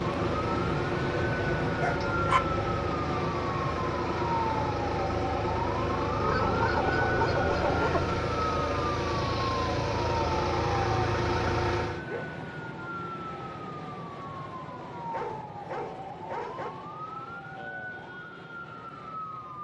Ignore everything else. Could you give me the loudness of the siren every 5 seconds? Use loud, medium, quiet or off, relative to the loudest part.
loud, loud, medium, medium.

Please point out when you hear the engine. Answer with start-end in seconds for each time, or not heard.
0.0-12.1.